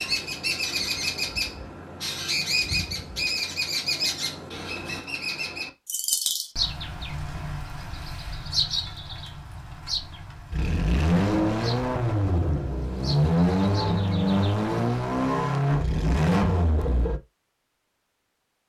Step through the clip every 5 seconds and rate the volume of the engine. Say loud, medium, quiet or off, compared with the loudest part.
off, off, loud, loud.